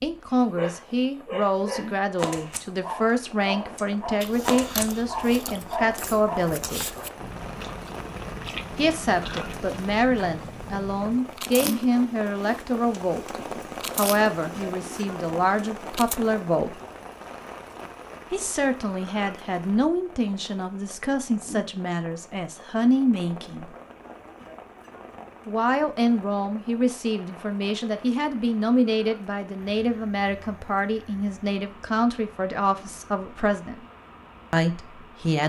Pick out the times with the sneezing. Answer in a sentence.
You can't hear the sneezing here.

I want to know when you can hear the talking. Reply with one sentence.
The talking can be heard from 0.0 to 6.8 s, from 8.8 to 16.8 s, from 18.3 to 23.8 s, from 25.4 to 33.9 s and from 34.5 to 35.4 s.